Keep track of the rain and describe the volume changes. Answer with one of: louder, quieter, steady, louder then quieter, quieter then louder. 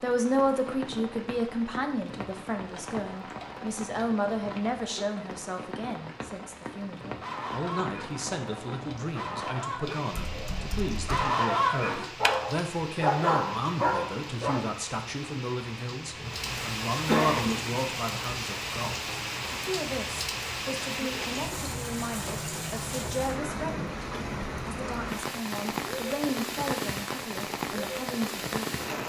louder.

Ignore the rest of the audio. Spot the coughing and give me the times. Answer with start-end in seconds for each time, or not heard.
16.2-17.6.